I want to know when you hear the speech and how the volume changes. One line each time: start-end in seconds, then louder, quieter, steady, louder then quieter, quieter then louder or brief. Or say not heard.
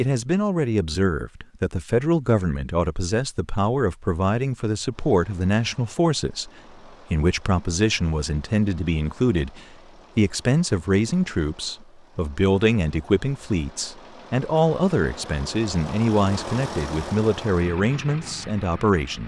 0.0-6.5 steady
7.1-19.2 steady.